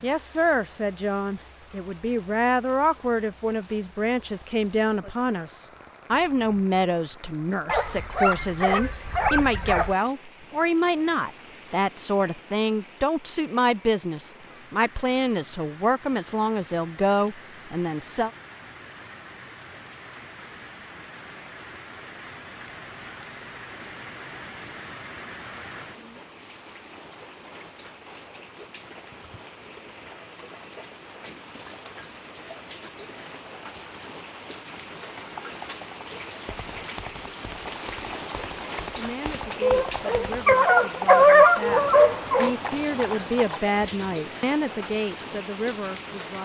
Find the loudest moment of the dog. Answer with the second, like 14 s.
41 s.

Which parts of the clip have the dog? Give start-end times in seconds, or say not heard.
7.7-9.9, 39.6-42.5.